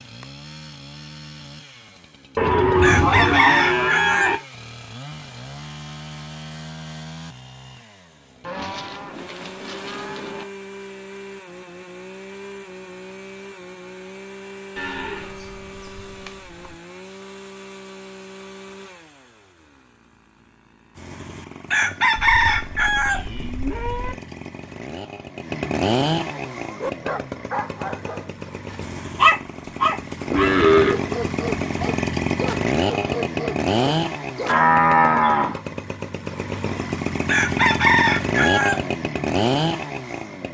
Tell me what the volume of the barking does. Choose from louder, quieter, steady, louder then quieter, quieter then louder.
louder then quieter.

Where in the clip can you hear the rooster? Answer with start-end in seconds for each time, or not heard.
2.8-4.3, 21.6-23.2, 37.2-38.8.